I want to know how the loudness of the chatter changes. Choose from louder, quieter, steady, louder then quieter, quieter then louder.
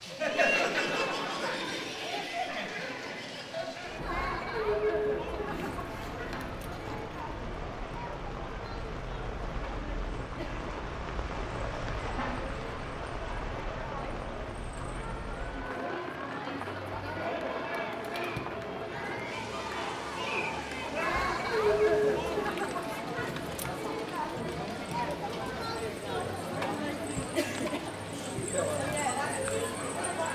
quieter then louder.